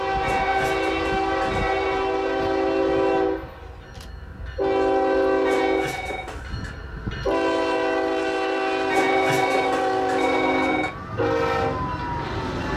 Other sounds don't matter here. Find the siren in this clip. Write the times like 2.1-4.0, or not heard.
8.7-12.7.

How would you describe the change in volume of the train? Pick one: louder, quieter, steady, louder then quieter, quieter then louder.
steady.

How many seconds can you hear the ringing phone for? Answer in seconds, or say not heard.
5 s.